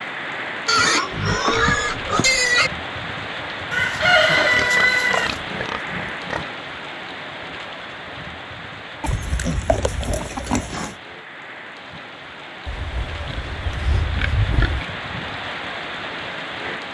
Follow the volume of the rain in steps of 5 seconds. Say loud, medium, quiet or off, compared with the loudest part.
loud, loud, medium, loud.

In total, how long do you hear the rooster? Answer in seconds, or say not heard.
2 s.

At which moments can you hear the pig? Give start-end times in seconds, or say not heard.
0.7-2.7, 4.3-6.5, 9.0-10.9, 12.7-14.8.